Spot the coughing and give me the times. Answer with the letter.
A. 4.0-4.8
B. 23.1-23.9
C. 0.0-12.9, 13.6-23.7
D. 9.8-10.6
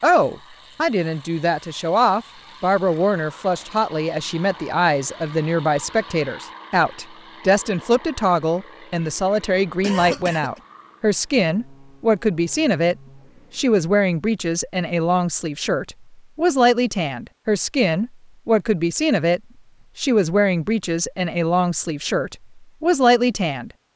D.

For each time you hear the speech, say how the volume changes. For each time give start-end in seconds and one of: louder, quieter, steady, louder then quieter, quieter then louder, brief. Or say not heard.
0.0-12.9 steady
13.6-23.7 steady.